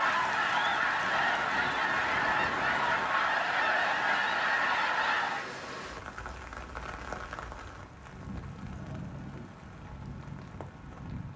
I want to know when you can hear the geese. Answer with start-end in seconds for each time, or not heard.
0.0-5.5.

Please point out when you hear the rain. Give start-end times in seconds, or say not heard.
0.0-11.3.